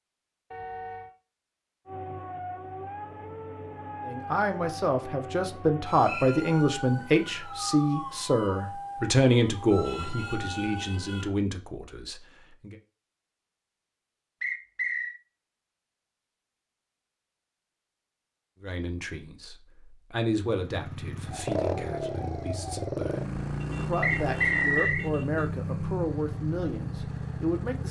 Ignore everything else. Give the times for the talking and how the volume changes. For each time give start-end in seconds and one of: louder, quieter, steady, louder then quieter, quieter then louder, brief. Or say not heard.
4.0-12.8 quieter
18.6-27.8 quieter then louder.